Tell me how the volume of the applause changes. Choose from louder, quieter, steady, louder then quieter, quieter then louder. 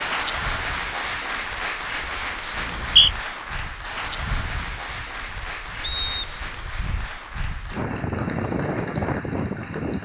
quieter.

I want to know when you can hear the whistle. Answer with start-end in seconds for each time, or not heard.
2.5-3.1, 5.8-6.4.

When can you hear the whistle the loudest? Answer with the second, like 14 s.
3 s.